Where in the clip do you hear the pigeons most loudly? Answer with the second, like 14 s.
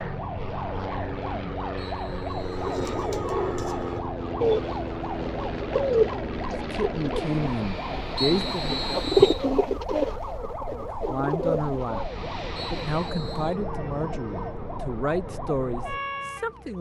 9 s.